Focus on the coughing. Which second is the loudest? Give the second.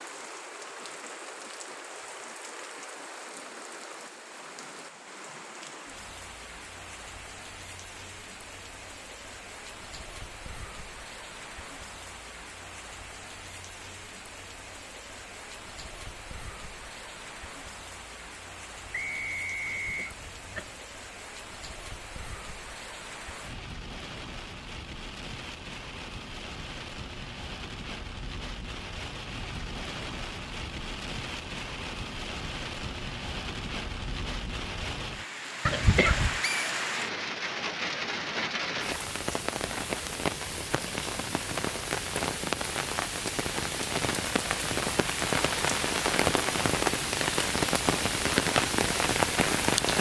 36 s.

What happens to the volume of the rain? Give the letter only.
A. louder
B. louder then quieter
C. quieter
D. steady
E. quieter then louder
A.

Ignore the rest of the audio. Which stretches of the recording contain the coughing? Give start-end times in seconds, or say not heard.
19.6-20.9, 35.6-36.4.